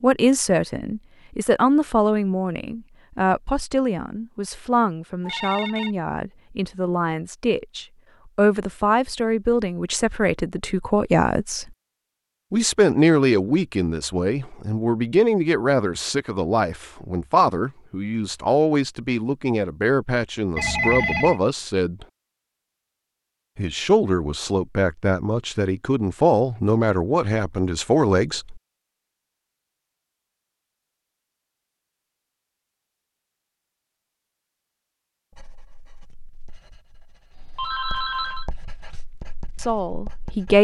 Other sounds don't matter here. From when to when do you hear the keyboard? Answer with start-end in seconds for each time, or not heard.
not heard.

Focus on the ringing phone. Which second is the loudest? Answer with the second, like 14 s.
21 s.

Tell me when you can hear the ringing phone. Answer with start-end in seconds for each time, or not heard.
5.2-6.0, 20.6-21.4, 37.4-38.5.